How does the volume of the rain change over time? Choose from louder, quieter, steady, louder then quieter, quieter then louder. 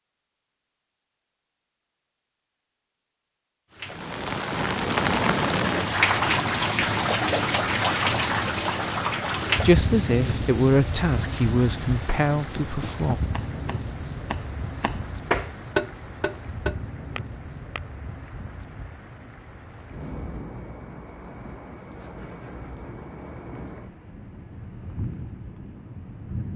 quieter.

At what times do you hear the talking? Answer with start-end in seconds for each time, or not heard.
9.6-13.2.